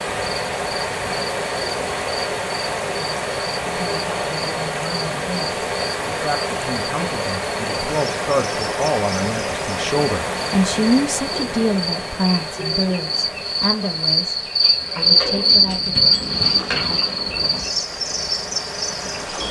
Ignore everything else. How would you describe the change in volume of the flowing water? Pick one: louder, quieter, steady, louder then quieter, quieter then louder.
quieter.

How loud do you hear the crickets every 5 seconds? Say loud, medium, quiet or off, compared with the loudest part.
quiet, quiet, medium, loud.